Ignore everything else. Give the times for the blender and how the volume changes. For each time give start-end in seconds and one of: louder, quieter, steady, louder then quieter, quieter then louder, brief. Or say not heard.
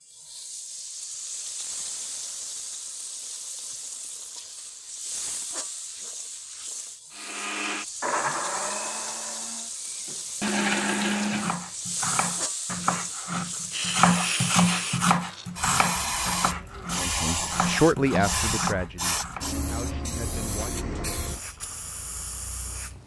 7.1-11.6 quieter then louder.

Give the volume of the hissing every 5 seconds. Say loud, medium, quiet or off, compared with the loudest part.
medium, medium, loud, loud, medium.